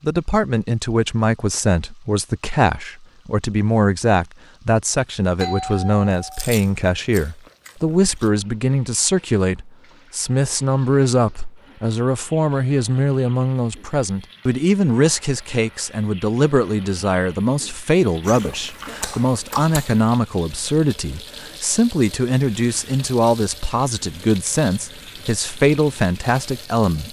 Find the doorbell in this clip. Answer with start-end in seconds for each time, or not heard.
5.3-6.5.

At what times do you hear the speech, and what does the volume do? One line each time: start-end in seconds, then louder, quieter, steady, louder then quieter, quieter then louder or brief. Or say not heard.
0.0-27.0 steady.